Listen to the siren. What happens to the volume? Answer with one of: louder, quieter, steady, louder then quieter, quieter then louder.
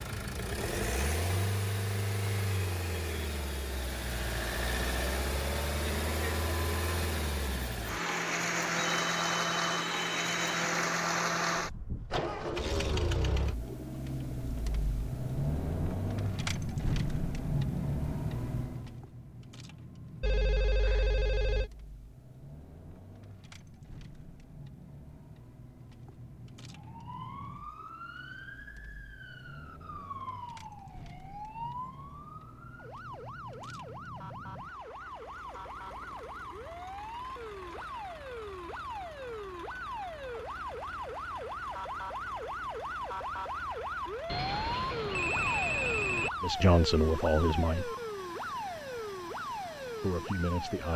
louder.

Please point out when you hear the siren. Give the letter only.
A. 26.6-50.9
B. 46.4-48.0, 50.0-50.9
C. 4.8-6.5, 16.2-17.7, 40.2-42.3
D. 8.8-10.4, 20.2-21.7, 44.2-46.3
A.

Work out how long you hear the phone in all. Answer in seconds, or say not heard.
5 s.